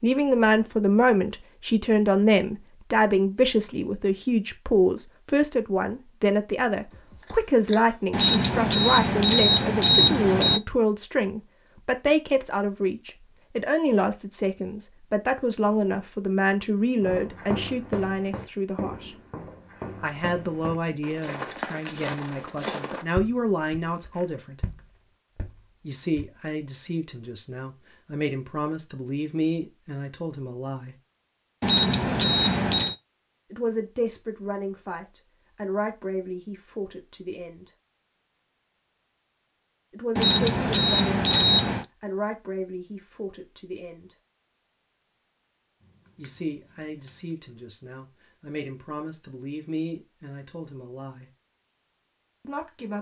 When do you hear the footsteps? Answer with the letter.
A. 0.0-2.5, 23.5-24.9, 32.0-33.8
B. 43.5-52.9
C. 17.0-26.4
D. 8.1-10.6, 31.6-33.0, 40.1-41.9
C.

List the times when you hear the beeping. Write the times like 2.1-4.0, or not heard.
8.1-10.6, 31.6-33.0, 40.1-41.9.